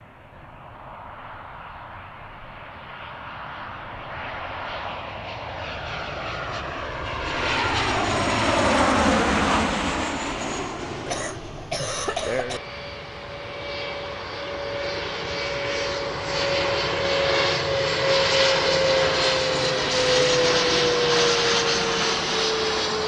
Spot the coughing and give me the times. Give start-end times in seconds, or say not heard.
11.1-12.6.